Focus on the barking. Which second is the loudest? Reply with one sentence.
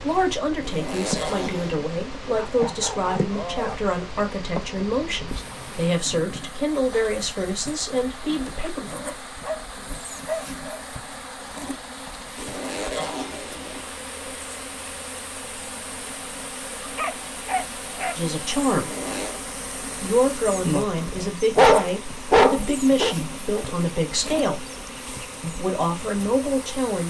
The volume of the barking peaks at 22 seconds.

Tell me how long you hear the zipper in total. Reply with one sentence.
You can hear the zipper for 3 seconds altogether.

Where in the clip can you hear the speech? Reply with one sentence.
The speech can be heard from 0.0 to 8.9 s, from 18.1 to 18.9 s, from 20.0 to 24.6 s and from 25.4 to 27.0 s.